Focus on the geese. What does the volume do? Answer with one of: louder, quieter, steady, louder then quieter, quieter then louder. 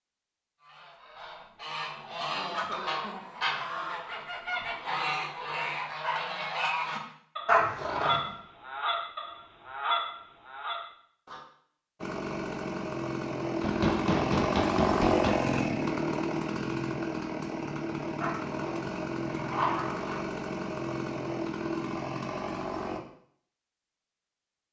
steady.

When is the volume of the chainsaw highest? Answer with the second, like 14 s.
15 s.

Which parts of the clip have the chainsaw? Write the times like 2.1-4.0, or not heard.
12.0-23.0.